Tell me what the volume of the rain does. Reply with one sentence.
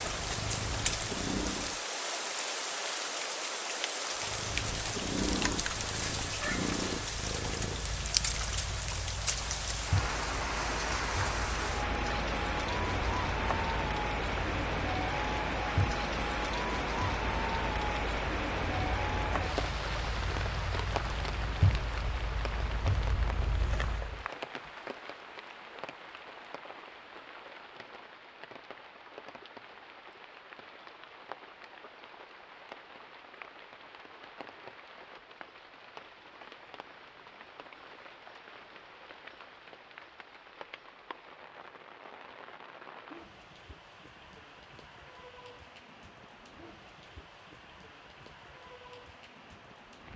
The volume of the rain goes down.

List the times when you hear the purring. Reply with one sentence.
The purring can be heard from 0.0 to 1.8 s and from 4.2 to 24.2 s.